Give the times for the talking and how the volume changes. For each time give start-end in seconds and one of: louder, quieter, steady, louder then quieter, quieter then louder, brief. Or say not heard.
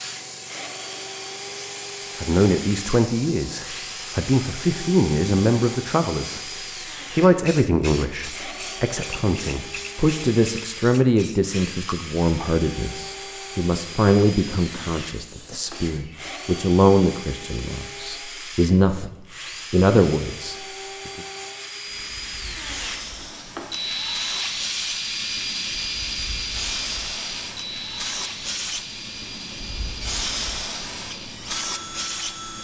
2.2-21.2 steady.